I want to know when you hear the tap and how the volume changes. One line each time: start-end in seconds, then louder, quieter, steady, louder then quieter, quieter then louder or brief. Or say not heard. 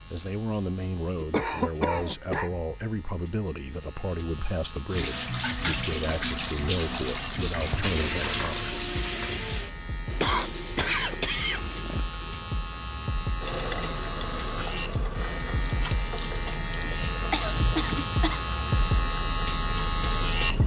4.8-20.6 quieter.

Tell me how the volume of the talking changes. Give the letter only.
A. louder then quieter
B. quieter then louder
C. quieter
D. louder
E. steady
E.